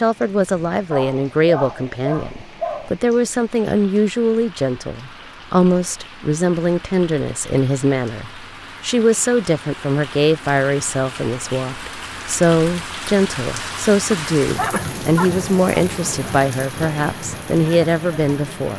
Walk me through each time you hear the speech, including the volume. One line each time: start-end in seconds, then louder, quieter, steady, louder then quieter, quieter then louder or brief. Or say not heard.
0.0-18.7 steady.